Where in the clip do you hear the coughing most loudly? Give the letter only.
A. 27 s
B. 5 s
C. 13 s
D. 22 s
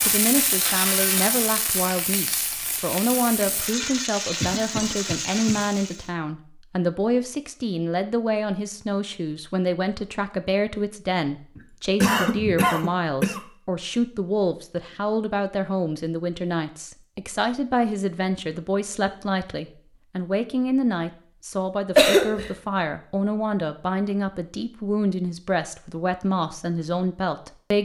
D.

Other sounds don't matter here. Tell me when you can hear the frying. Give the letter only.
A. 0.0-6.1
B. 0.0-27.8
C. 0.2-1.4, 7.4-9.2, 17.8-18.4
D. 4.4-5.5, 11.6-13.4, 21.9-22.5
A.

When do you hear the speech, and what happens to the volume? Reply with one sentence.
The speech can be heard from 0.0 to 27.8 s, at a steady volume.